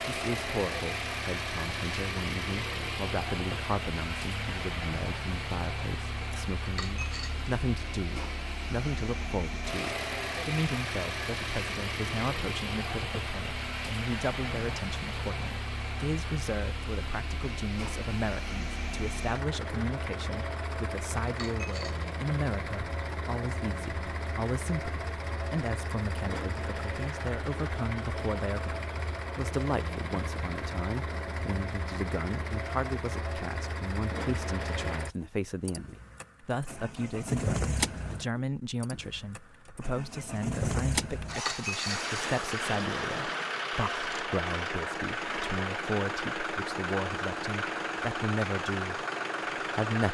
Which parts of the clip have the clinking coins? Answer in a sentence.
You can hear the clinking coins from 6.7 to 7.5 s, from 21.2 to 22.1 s and from 41.3 to 42.0 s.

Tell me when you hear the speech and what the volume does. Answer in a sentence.
You can hear the speech from 0.1 to 50.0 s, at a steady volume.